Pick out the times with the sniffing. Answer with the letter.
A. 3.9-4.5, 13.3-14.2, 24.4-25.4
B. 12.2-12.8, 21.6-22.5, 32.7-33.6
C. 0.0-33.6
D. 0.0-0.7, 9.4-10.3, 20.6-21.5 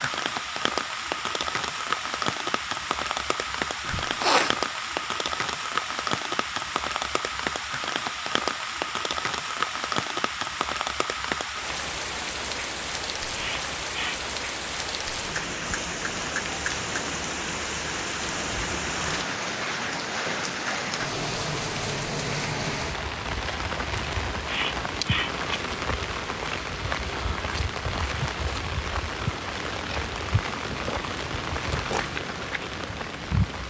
A.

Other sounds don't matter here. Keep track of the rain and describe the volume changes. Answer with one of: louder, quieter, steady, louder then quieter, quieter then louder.
steady.